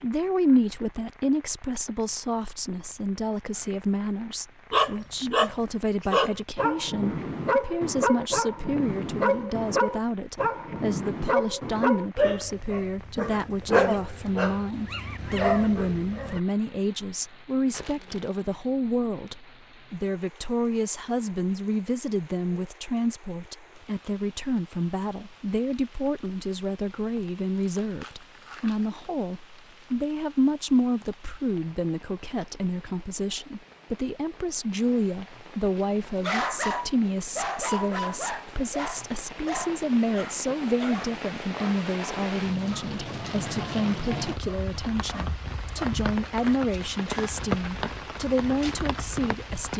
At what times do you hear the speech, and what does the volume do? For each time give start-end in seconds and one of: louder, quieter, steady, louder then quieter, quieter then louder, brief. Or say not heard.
0.0-49.7 steady.